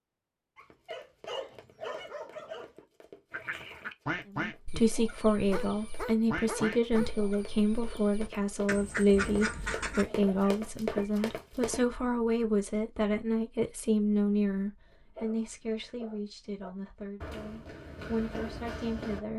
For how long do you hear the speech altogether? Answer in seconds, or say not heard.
15 s.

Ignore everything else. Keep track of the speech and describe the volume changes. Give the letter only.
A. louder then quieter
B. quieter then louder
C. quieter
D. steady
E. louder
C.